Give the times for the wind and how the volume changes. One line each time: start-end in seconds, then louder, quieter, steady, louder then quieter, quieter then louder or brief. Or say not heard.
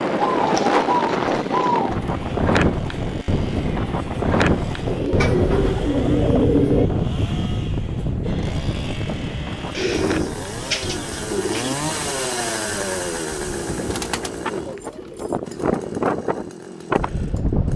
0.0-17.7 quieter then louder.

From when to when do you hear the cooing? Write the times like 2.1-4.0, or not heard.
0.1-1.9, 4.8-6.9, 9.8-11.8, 13.8-15.4.